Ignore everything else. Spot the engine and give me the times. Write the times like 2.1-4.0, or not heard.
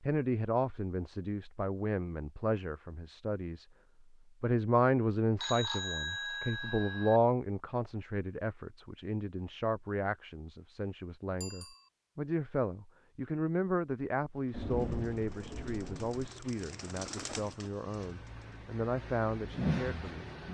14.3-20.5.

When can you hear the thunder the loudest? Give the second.
15 s.